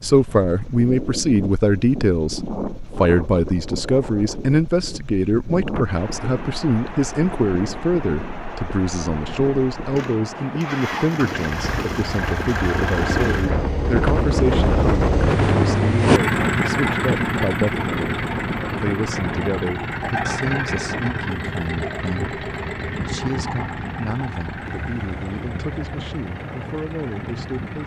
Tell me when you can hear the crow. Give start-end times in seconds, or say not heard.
not heard.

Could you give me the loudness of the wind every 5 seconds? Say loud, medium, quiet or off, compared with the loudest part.
medium, medium, loud, loud, medium, medium.